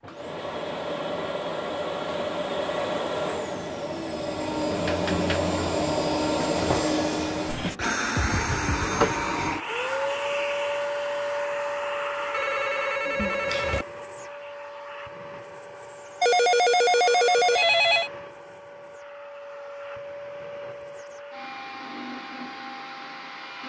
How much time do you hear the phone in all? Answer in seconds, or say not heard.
4 s.